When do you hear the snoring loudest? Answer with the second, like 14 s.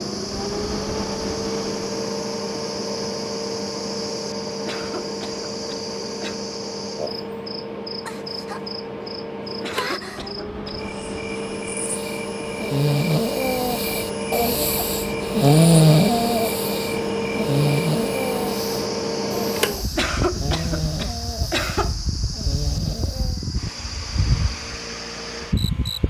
16 s.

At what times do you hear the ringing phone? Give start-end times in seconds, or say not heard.
not heard.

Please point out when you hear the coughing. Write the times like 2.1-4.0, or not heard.
4.7-6.3, 9.6-10.8, 19.9-21.9.